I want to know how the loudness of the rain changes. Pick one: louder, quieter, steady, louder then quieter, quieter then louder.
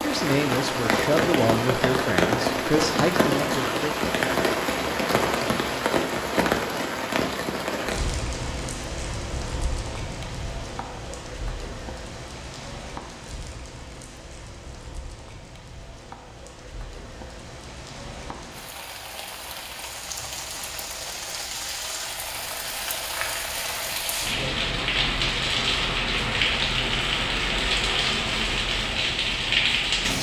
quieter then louder.